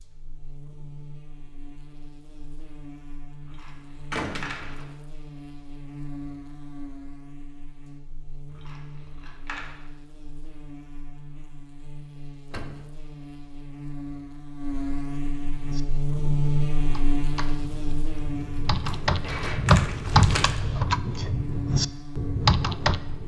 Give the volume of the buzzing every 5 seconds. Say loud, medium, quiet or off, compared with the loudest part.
quiet, quiet, medium, loud, medium.